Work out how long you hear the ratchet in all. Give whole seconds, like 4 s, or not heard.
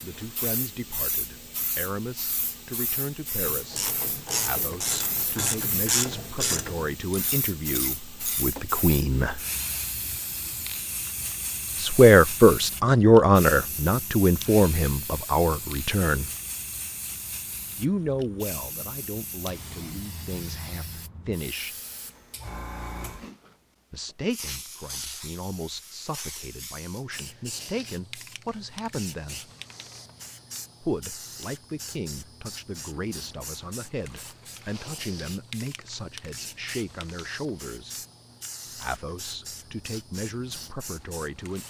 5 s.